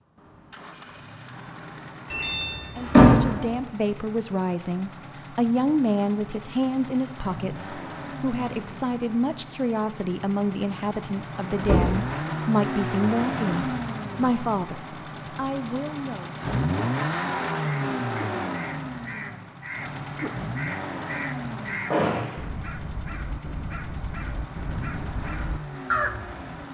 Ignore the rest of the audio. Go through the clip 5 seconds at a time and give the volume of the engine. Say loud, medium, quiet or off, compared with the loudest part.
quiet, medium, loud, loud, medium, medium.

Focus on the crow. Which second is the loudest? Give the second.
26 s.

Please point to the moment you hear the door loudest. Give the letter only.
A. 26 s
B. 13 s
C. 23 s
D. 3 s
D.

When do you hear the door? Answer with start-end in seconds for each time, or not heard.
2.1-3.5, 11.7-12.1, 21.9-22.4.